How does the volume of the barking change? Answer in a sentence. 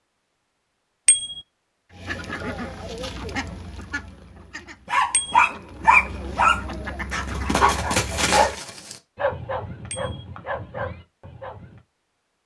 The volume of the barking goes down.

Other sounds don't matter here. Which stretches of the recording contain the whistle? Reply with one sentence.
The whistle can't be heard in this clip.